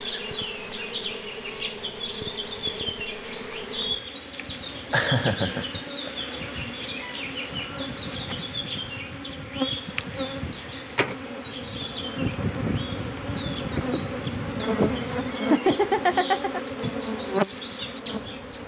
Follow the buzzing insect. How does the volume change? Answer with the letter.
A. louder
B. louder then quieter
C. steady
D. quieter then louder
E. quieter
A.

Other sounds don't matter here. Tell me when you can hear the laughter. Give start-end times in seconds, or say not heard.
4.9-6.1, 15.5-16.6.